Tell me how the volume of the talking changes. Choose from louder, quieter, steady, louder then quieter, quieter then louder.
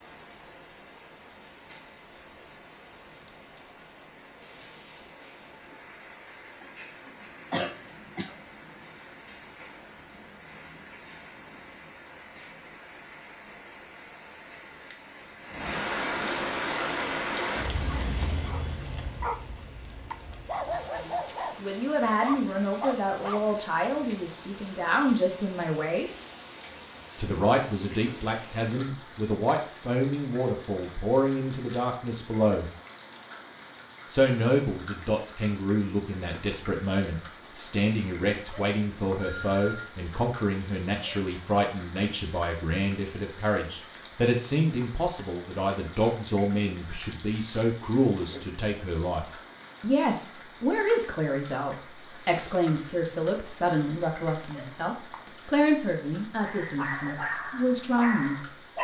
steady.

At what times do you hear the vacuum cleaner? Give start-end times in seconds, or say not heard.
not heard.